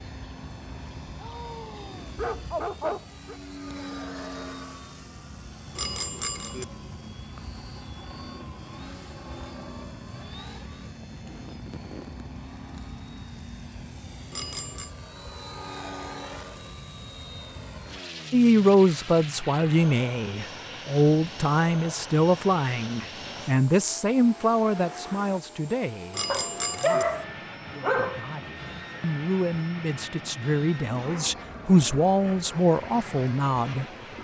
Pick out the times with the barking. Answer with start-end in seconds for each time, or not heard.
1.2-3.4, 26.2-28.2.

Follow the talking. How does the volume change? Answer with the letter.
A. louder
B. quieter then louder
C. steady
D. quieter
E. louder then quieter
B.